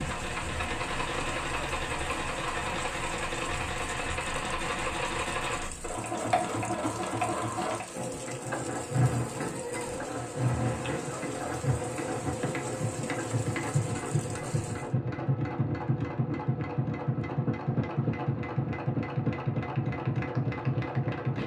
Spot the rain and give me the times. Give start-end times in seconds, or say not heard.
0.0-14.9.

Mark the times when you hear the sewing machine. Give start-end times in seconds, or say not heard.
0.0-21.4.